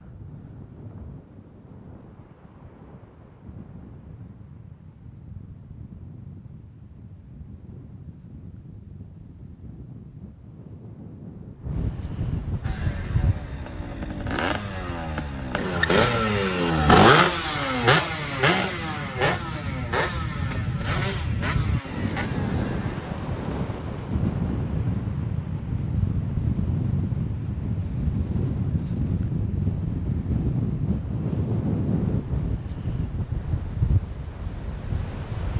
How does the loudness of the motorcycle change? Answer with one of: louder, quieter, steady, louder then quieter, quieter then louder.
louder then quieter.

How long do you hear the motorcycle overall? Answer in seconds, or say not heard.
11 s.